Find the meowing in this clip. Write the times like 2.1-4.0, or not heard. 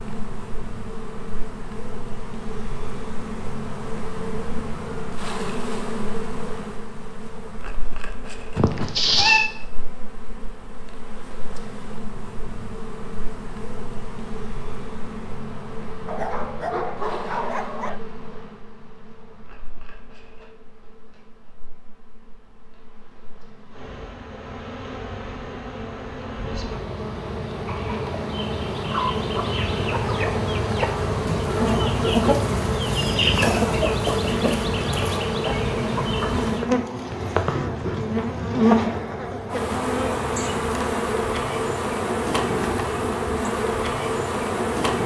8.6-9.5.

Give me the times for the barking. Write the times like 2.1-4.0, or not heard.
16.1-18.0.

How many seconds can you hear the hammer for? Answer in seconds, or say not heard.
not heard.